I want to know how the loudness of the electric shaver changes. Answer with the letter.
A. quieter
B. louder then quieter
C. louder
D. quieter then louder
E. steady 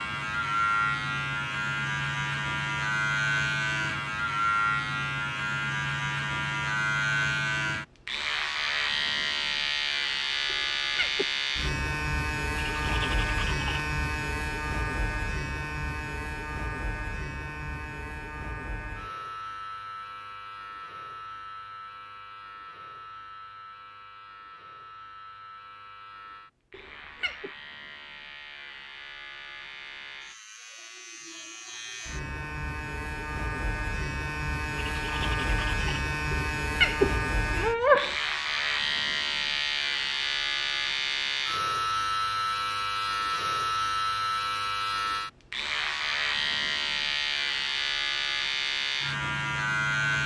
D.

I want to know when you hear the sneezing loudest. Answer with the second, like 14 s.
38 s.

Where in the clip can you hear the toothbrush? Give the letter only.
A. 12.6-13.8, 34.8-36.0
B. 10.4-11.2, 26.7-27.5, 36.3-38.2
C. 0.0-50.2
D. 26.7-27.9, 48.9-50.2
A.